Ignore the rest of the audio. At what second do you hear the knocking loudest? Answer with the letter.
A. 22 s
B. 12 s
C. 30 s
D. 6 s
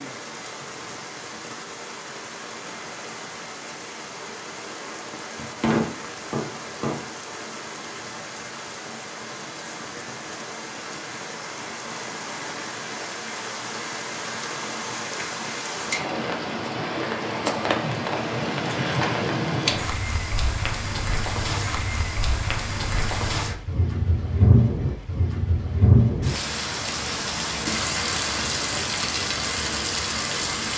D.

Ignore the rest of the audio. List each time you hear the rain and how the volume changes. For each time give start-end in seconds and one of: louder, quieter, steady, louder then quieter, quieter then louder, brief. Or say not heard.
0.0-30.7 louder.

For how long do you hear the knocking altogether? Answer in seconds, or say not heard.
2 s.